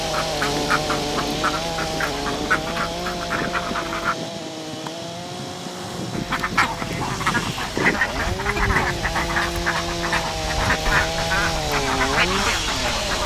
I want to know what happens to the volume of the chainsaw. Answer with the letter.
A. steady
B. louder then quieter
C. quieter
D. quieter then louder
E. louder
D.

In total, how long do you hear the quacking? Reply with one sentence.
You can hear the quacking for 11 seconds altogether.